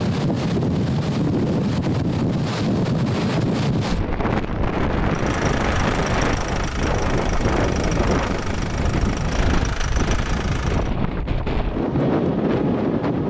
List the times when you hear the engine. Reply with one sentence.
You can hear the engine from 5.0 to 10.9 s.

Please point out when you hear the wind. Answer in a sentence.
The wind can be heard from 0.0 to 13.2 s.